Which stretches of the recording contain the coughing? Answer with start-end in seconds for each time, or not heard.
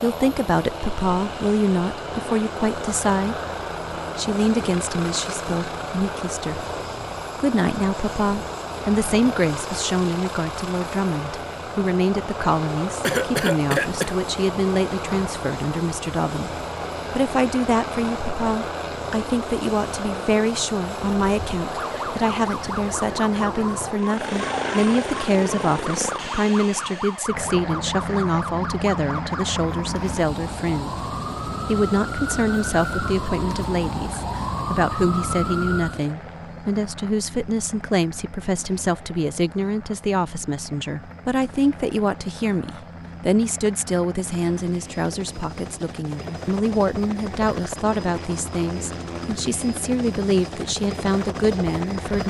13.0-14.2.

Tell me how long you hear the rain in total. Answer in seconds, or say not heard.
not heard.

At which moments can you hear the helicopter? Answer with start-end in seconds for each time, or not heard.
0.0-52.2.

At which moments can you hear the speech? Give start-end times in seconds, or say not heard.
0.0-3.4, 4.2-6.7, 7.4-30.9, 31.6-52.2.